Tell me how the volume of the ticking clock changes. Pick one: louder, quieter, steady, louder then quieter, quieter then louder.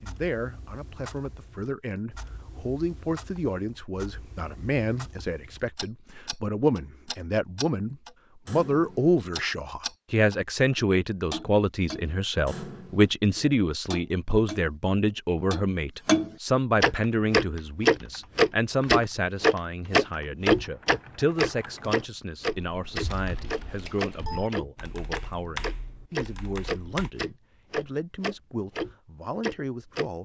louder then quieter.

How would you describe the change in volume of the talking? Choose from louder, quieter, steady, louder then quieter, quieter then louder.
louder then quieter.